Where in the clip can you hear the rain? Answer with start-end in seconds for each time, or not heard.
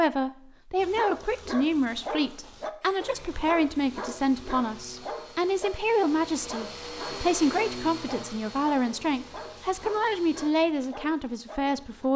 not heard.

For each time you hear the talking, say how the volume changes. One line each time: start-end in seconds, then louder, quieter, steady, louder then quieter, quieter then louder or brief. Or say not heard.
0.0-12.1 steady.